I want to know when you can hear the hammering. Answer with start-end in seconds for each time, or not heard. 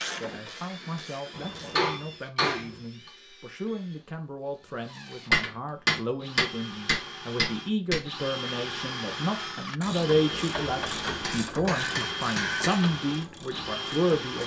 1.4-3.1, 5.3-8.0, 11.1-12.9.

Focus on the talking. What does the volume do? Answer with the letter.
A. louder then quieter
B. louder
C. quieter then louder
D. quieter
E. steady
B.